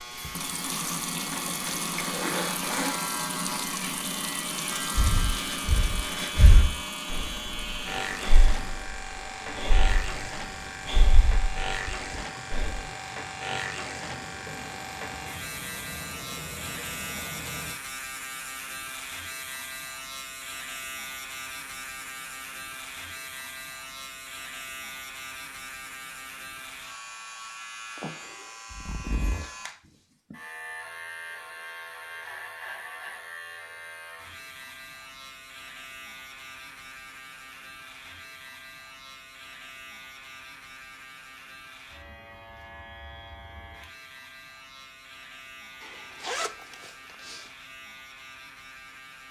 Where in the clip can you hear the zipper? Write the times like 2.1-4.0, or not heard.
1.3-3.0, 28.7-29.4, 45.8-47.5.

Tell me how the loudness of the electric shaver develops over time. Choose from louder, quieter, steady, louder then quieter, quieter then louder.
quieter.